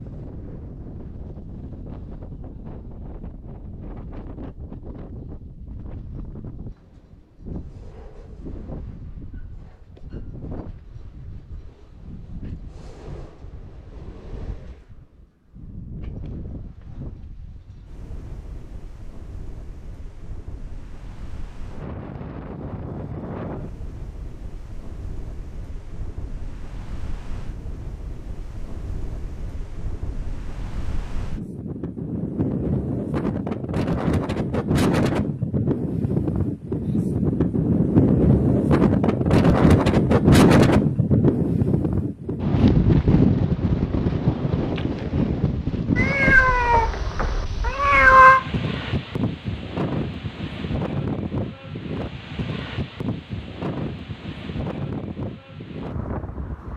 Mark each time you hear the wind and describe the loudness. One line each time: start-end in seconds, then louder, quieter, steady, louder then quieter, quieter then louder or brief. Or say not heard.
0.0-56.7 louder then quieter.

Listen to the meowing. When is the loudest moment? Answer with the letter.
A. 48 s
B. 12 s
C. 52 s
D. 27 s
A.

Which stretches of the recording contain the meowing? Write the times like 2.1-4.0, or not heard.
46.0-48.4.